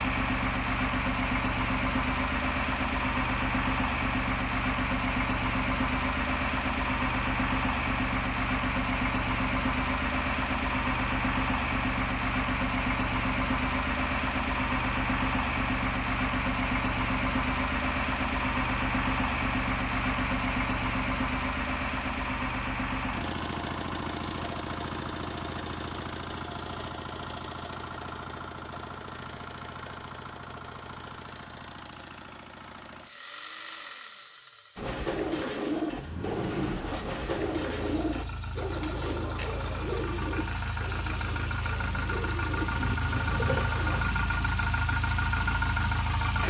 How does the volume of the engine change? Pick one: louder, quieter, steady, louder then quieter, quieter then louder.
quieter then louder.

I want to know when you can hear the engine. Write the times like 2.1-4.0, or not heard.
0.0-46.4.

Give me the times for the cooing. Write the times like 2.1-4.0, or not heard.
34.8-44.0.